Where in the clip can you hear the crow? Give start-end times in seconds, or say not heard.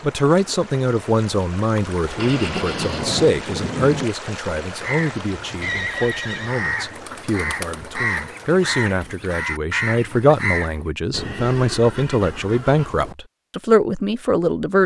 4.7-10.8.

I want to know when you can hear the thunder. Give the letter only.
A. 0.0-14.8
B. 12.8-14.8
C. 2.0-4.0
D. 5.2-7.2
C.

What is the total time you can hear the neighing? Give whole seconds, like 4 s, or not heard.
4 s.